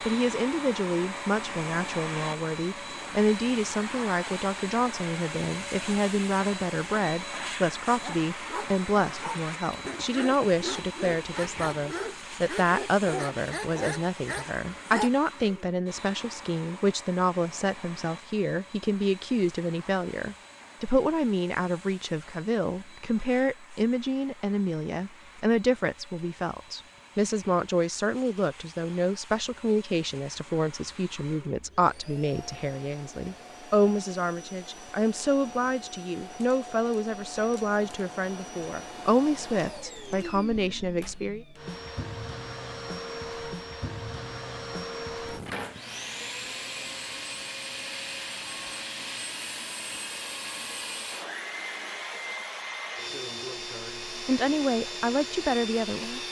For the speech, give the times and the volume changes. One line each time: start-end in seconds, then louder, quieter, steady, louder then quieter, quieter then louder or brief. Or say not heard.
0.0-41.5 steady
54.1-56.2 brief.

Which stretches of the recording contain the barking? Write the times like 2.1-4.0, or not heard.
7.9-15.1.